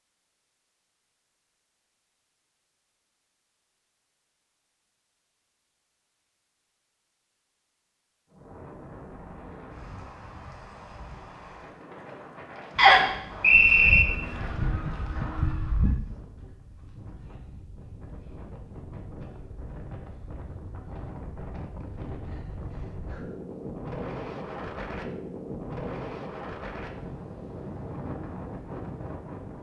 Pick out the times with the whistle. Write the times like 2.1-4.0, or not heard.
12.8-14.0.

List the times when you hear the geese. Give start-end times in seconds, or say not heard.
13.5-16.0.